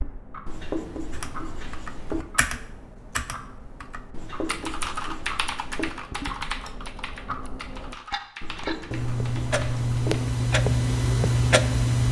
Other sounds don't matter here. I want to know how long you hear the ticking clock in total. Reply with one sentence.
You can hear the ticking clock for 12 seconds altogether.